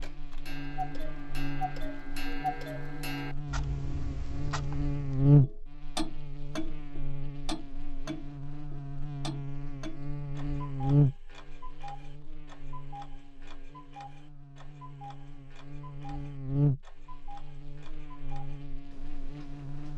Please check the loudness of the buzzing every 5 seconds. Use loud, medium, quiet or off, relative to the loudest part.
medium, loud, loud, medium.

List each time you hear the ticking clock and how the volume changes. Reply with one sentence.
The ticking clock can be heard from 0.0 to 19.9 s, getting quieter.